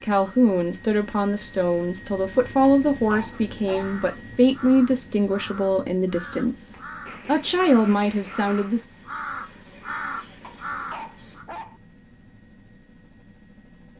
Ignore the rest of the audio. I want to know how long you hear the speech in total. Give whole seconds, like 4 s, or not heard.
9 s.